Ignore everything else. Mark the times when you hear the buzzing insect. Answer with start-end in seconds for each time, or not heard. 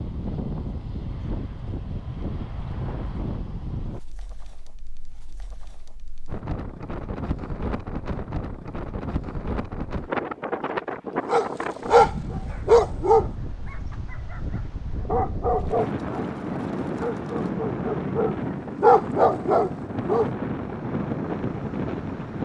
not heard.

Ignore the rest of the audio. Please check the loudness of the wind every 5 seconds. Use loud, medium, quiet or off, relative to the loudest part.
medium, medium, loud, loud, loud.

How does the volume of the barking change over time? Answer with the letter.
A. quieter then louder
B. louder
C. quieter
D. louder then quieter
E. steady
A.